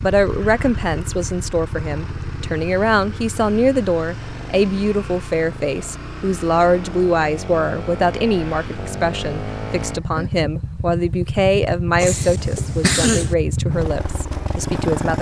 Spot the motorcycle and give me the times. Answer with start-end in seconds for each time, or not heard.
0.0-15.1.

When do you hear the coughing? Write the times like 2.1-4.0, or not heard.
12.0-13.3.